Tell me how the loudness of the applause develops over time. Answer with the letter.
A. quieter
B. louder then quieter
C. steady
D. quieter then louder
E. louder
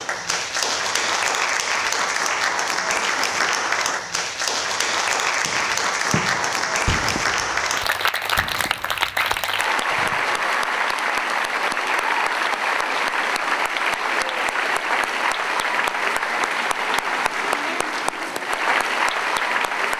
C.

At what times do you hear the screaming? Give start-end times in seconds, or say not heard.
not heard.